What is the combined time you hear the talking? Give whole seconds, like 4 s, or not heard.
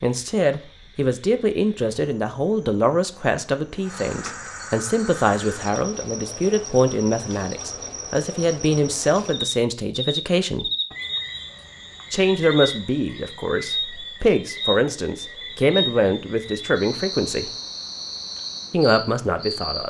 17 s.